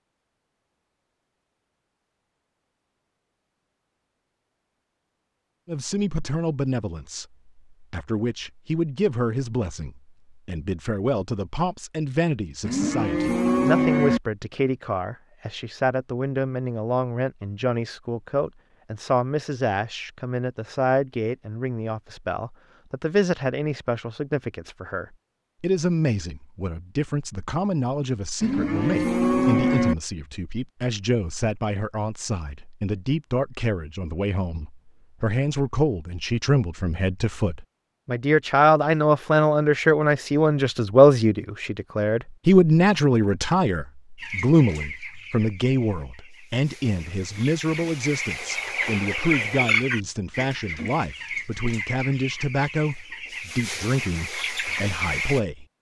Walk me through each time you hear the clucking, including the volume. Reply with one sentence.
The clucking can be heard from 44.1 to 55.4 s, getting louder then quieter.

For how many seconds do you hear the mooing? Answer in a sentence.
You can hear the mooing for 3 seconds altogether.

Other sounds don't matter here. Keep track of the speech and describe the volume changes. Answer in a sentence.
The loudness of the speech goes up, then down.